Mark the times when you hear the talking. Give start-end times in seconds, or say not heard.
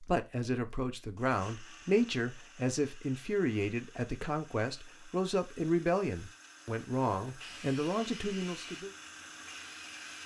0.0-8.9.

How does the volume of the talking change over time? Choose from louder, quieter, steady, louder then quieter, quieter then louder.
steady.